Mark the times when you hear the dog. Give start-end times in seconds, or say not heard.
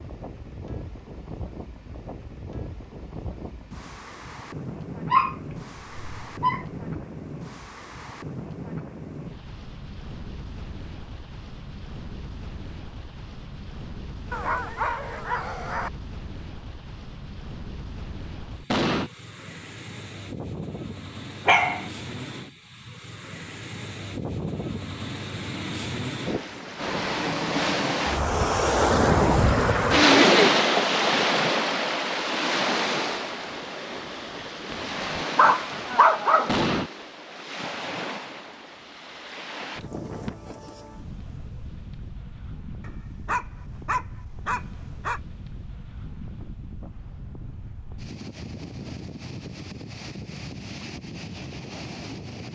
5.1-7.0, 14.3-15.9, 21.4-21.9, 34.7-36.6, 42.8-45.2.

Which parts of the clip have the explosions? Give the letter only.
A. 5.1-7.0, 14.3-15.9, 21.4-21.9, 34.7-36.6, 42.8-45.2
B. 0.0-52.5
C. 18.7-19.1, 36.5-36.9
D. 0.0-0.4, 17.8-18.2
C.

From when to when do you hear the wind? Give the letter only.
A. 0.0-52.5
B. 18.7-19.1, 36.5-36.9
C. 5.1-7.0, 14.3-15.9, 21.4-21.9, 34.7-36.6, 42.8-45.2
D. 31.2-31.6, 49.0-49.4
A.